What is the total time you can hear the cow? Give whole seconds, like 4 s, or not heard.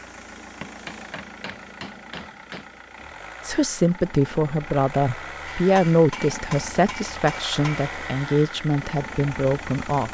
not heard.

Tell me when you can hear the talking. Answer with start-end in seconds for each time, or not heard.
3.5-10.1.